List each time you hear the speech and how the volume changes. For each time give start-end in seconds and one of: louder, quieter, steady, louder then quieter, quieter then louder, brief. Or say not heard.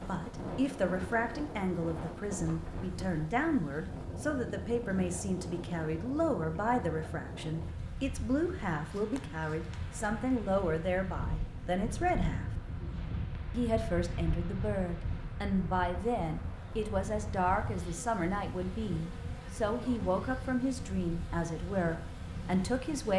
0.0-12.4 steady
13.5-23.1 steady.